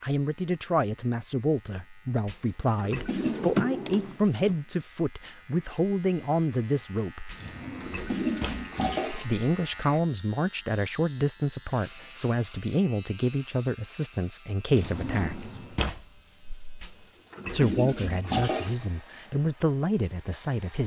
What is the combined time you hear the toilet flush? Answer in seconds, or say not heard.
5 s.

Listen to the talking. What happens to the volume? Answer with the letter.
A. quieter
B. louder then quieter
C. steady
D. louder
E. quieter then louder
C.